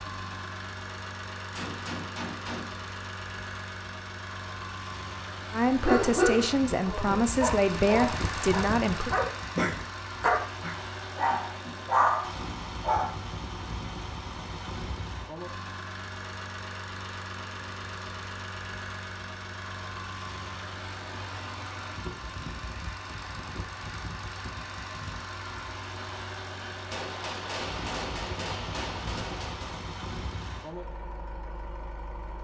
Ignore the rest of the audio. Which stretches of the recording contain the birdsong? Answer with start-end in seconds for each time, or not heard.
not heard.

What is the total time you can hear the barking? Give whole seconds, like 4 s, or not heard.
7 s.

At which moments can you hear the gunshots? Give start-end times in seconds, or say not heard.
1.5-2.8, 26.9-29.9.